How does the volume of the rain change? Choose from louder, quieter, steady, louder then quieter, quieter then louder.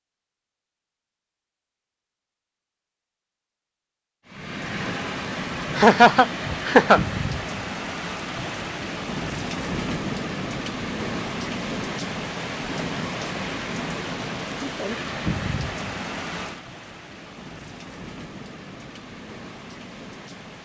quieter.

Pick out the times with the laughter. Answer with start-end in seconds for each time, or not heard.
5.8-7.0.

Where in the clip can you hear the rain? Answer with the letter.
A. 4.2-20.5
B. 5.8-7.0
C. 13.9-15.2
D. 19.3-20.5
A.